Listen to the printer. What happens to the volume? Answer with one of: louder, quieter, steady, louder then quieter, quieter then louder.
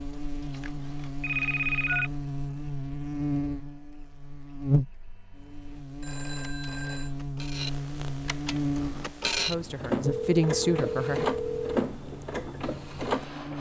quieter then louder.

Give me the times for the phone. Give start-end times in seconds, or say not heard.
1.2-2.1, 6.0-7.2, 10.1-11.7.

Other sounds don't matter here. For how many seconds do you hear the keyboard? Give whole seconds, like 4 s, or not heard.
not heard.